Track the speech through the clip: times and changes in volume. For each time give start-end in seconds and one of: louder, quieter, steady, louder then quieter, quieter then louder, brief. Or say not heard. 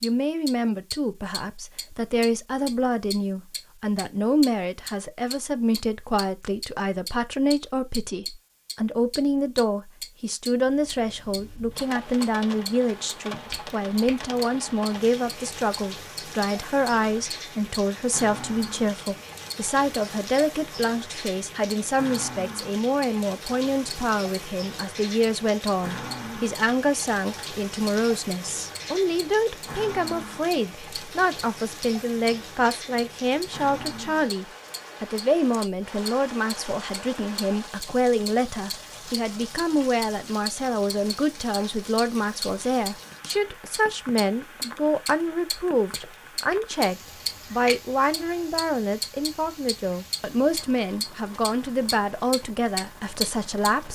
0.0-53.8 steady.